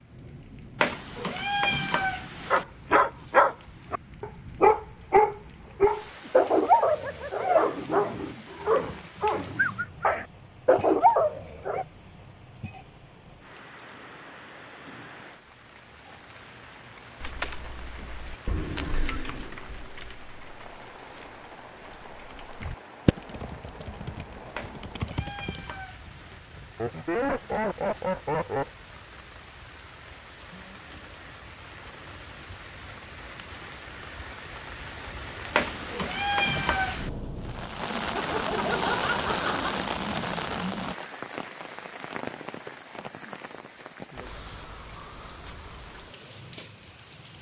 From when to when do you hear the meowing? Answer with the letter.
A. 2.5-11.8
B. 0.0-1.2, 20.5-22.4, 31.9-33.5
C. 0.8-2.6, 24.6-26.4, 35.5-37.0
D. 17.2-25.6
C.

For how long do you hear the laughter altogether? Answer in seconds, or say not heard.
5 s.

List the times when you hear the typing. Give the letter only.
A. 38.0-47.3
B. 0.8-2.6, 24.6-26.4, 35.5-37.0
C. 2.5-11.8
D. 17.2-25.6
D.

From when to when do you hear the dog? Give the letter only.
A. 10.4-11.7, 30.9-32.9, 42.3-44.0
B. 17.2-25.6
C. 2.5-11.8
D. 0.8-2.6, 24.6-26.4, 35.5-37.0
C.